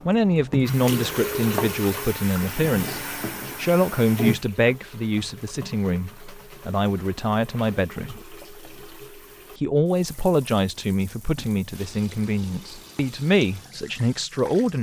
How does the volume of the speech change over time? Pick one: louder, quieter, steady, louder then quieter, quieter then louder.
steady.